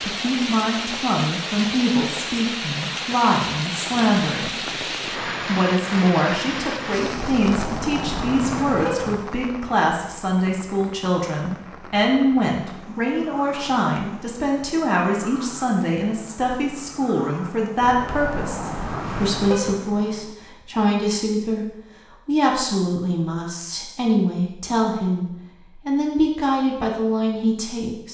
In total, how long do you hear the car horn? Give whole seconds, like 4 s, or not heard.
4 s.